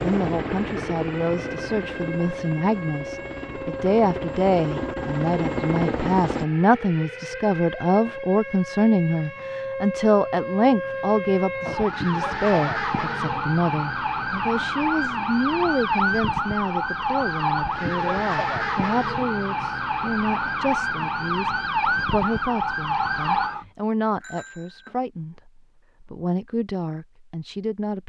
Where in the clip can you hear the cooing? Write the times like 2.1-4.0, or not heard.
not heard.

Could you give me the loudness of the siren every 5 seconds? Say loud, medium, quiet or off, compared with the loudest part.
medium, medium, loud, loud, loud, off.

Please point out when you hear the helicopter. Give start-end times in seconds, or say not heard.
0.0-6.5.